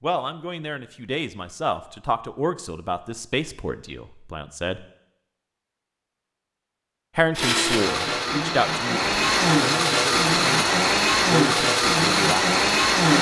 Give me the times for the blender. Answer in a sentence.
You can hear the blender from 7.3 to 13.1 s.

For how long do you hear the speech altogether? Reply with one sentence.
The speech can be heard for 10 seconds in total.